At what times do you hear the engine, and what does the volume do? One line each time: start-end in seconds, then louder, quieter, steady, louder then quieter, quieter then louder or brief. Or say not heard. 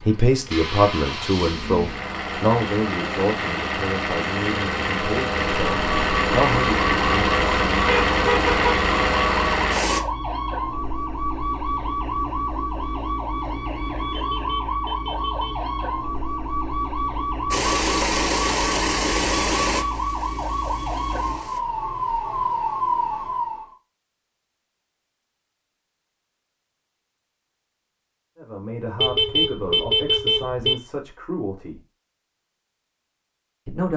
0.0-10.0 louder
17.5-21.6 quieter.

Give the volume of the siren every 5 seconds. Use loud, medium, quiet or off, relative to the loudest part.
off, loud, loud, loud, loud, off, off.